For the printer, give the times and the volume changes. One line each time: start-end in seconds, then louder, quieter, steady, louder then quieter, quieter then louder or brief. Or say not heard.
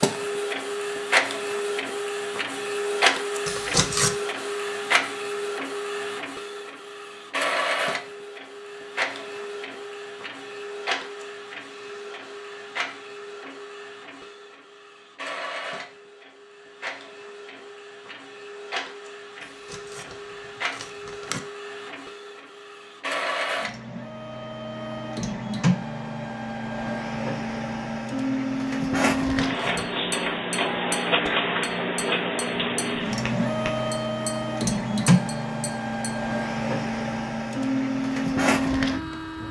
0.0-39.4 quieter then louder.